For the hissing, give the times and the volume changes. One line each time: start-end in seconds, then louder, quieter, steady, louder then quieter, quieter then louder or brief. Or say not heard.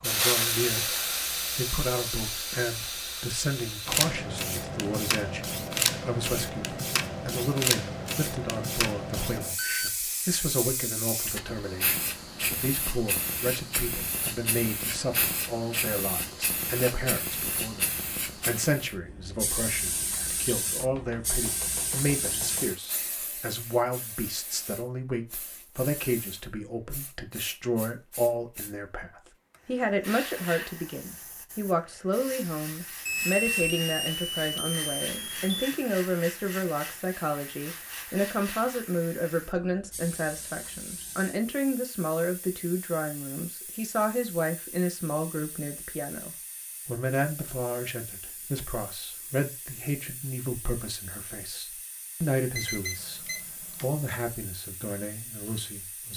0.0-56.1 quieter.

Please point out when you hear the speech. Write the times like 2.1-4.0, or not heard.
0.0-56.1.